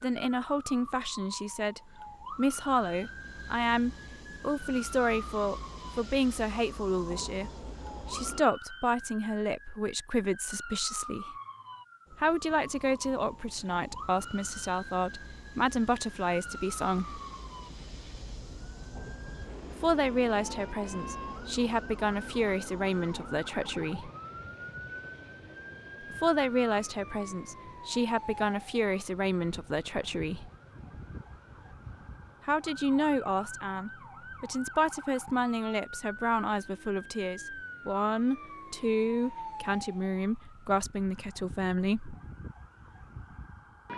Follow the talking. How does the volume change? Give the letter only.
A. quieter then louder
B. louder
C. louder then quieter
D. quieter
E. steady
E.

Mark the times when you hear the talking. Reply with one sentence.
You can hear the talking from 0.0 to 11.3 s, from 12.2 to 17.2 s, from 19.7 to 24.1 s, from 26.1 to 30.5 s and from 32.5 to 42.1 s.